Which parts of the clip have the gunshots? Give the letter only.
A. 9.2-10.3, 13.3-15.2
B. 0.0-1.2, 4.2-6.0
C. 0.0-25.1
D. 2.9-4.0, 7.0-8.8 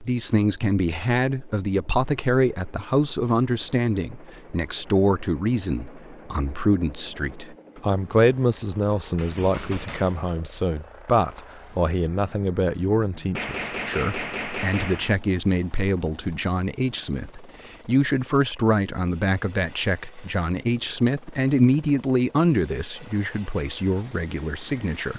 A.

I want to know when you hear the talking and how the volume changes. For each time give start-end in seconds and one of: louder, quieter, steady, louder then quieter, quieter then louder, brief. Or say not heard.
0.0-25.1 steady.